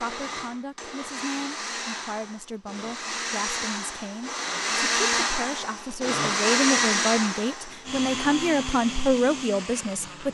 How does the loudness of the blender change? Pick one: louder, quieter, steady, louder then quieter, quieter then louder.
louder then quieter.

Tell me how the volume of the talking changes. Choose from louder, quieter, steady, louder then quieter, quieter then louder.
louder.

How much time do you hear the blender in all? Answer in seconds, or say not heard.
10 s.